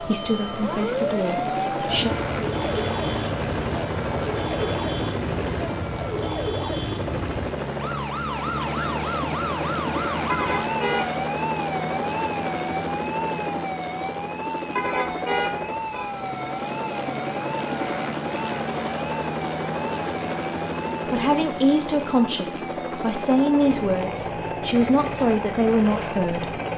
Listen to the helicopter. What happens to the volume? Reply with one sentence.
The volume of the helicopter stays about the same.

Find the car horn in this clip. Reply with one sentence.
The car horn can be heard from 10.2 to 11.2 s and from 14.8 to 16.1 s.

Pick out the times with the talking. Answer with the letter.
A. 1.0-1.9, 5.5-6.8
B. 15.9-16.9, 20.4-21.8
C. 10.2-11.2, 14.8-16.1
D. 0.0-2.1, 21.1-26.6
D.